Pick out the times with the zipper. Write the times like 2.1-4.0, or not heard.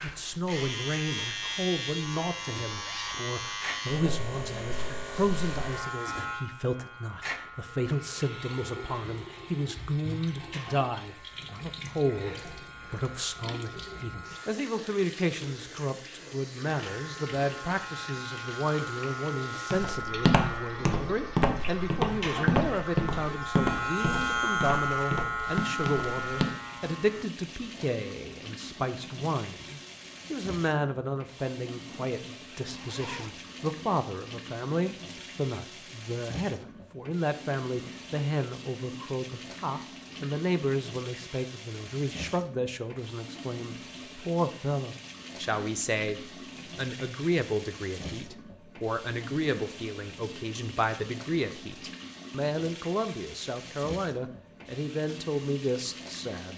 2.6-3.2, 32.7-33.5.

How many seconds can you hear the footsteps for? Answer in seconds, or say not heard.
7 s.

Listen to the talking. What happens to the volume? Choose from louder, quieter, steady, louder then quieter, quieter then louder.
steady.